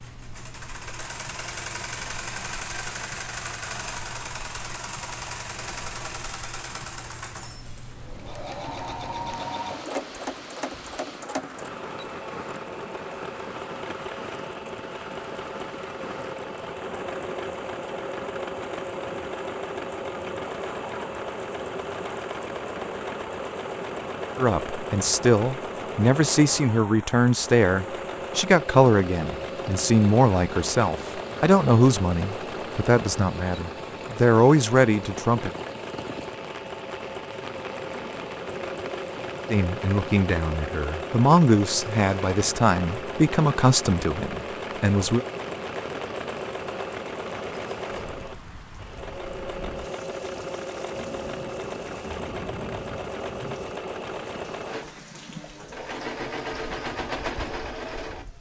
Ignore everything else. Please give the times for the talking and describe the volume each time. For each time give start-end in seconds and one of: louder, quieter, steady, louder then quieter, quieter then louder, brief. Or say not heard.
24.4-35.5 steady
39.5-45.2 louder then quieter.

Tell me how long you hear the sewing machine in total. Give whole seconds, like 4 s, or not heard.
58 s.